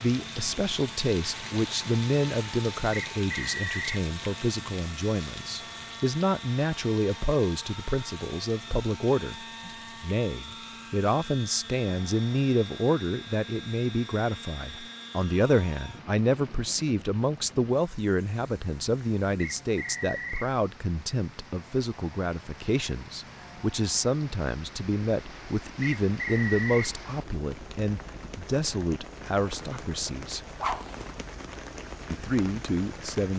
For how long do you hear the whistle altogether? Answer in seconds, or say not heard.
3 s.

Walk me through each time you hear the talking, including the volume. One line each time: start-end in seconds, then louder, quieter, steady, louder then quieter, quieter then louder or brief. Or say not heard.
0.0-30.4 steady
32.1-33.3 brief.